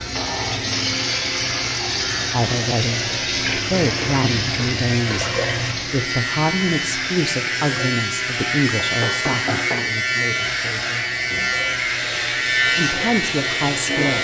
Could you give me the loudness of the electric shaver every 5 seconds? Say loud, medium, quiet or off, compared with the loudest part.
medium, loud, loud.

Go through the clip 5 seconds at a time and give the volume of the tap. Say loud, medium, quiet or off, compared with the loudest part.
loud, medium, medium.